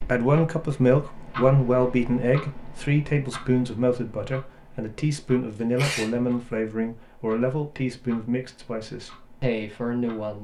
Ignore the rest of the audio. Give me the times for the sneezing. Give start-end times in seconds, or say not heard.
5.6-6.2.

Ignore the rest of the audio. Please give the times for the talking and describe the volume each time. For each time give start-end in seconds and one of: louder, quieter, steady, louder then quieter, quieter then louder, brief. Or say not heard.
0.0-10.4 quieter.